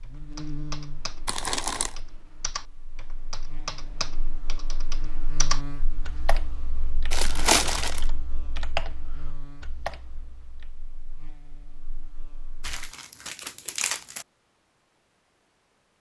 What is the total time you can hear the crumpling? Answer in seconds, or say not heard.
3 s.